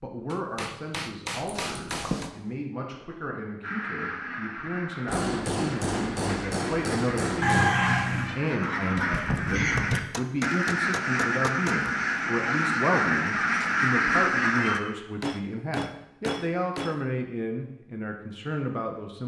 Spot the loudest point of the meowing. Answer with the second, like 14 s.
8 s.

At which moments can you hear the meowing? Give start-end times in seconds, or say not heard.
1.4-2.3, 7.4-8.3, 14.6-15.0.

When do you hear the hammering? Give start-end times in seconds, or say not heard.
0.3-2.3, 5.0-7.8, 9.9-11.8, 15.2-17.0.